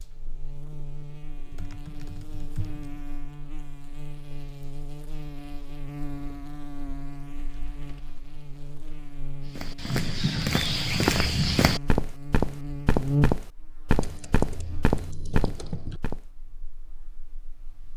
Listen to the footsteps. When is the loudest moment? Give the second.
11 s.